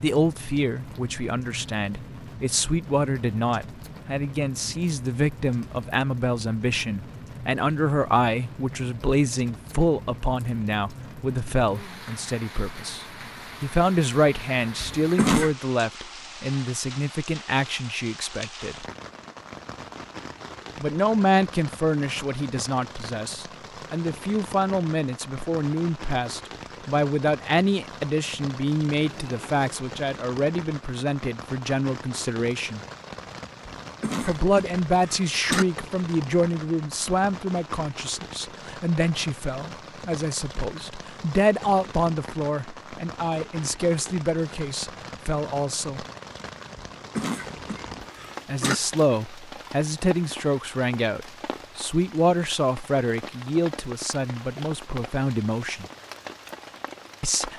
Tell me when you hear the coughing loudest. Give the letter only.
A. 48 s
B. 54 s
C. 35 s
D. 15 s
D.